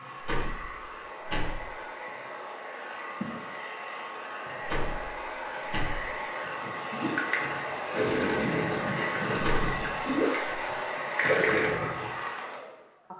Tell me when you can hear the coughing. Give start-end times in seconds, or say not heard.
not heard.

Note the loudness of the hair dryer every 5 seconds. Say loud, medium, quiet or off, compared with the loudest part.
medium, loud, loud.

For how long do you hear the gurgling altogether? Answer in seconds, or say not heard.
5 s.